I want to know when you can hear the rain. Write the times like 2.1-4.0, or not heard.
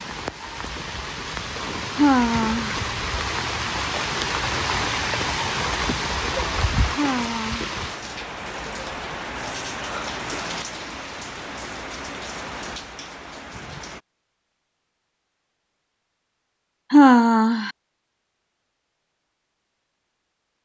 0.0-14.0.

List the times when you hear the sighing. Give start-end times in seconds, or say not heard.
1.9-2.8, 7.0-7.8, 16.9-17.7.